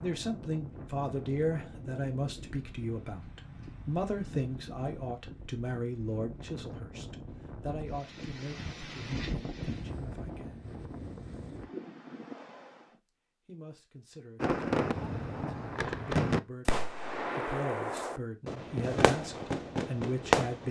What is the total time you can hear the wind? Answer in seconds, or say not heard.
13 s.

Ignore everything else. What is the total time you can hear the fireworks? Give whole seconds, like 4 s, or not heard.
6 s.